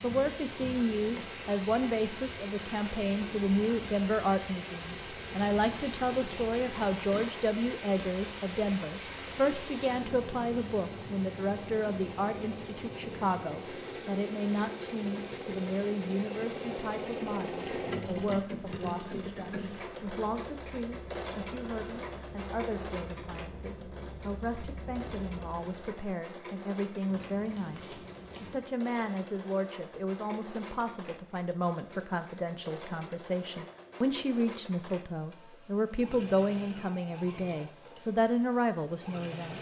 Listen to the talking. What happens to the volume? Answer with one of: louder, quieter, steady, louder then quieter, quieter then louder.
quieter then louder.